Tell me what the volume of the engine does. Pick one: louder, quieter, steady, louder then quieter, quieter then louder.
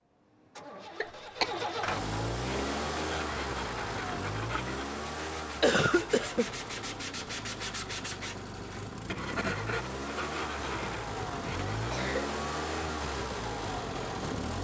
quieter then louder.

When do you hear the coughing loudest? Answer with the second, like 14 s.
6 s.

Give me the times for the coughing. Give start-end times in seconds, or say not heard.
1.0-1.6, 5.6-6.5, 11.7-12.3.